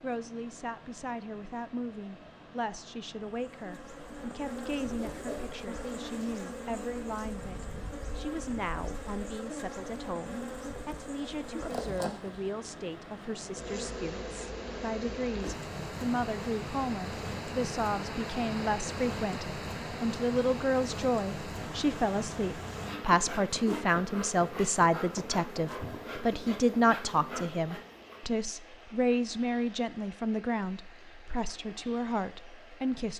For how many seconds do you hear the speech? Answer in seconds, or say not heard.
33 s.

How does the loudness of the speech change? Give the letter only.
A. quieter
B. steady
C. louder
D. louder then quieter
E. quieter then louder
C.